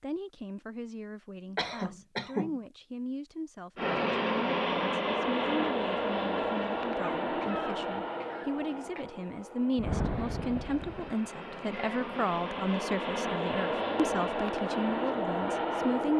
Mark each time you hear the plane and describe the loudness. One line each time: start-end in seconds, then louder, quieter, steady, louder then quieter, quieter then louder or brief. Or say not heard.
3.8-16.1 quieter then louder.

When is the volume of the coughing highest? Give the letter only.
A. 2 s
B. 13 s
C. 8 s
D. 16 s
A.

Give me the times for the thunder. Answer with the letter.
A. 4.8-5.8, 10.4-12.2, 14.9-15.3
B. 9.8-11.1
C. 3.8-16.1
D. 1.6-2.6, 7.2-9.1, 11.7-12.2
B.